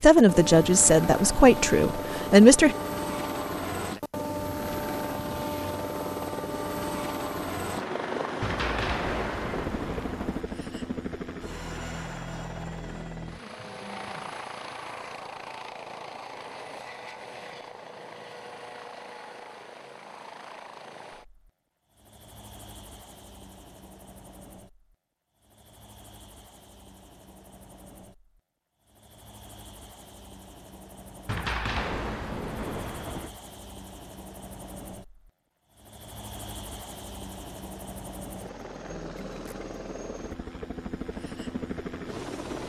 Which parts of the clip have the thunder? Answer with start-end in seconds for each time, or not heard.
8.4-10.4, 31.2-33.3.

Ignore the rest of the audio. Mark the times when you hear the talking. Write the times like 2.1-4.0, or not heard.
0.0-2.8.